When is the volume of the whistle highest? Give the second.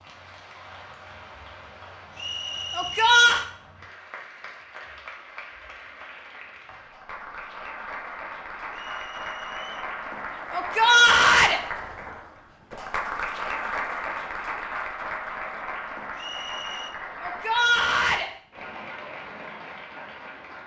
3 s.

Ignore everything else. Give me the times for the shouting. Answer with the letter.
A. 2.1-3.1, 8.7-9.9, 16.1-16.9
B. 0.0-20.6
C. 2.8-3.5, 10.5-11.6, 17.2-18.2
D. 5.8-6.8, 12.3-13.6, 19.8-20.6
C.